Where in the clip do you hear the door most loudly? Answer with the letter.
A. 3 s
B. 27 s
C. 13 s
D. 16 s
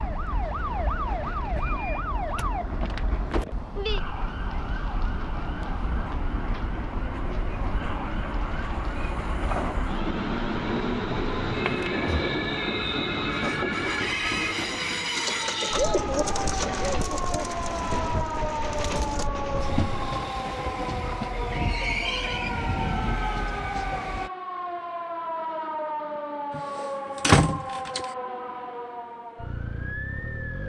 B.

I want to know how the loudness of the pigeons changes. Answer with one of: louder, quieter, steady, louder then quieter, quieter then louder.
quieter.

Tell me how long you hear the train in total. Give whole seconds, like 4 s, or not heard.
24 s.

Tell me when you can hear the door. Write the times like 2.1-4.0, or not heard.
1.6-2.5, 11.6-12.2, 26.5-28.1.